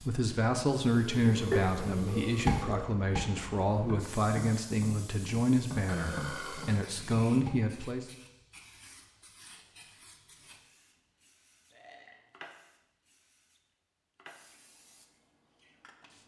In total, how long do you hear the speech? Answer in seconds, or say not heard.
8 s.